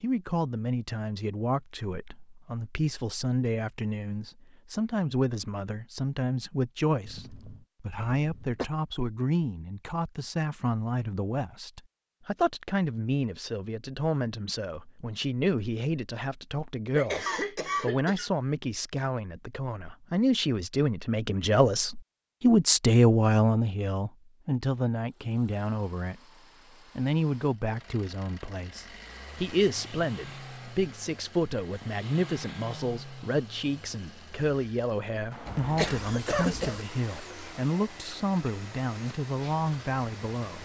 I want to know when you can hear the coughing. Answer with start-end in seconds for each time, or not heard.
7.0-8.7, 16.9-18.3, 35.5-36.8.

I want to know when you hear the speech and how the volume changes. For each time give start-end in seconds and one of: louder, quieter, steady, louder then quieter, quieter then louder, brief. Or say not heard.
0.0-26.2 louder
26.9-40.6 steady.